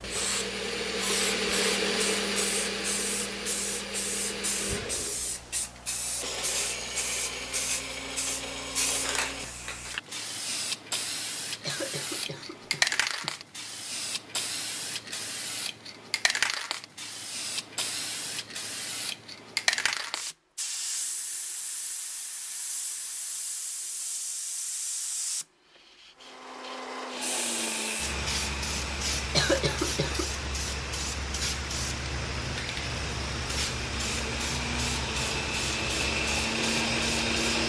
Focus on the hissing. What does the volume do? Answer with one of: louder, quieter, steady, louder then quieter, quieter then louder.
steady.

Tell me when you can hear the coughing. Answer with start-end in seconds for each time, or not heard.
11.6-13.4, 29.2-30.3.